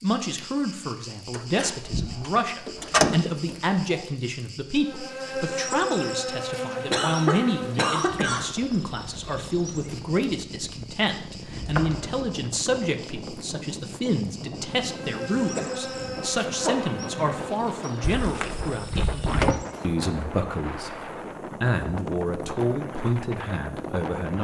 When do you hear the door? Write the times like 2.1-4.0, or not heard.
1.3-4.0, 11.4-12.8, 18.0-19.6.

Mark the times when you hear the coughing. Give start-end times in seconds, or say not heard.
6.9-8.4, 15.6-17.4.